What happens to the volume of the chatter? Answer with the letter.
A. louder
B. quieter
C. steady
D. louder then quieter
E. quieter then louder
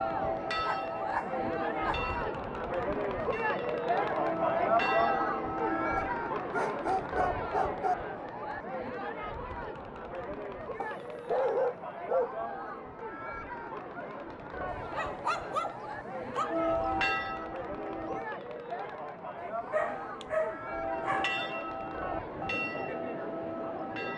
B.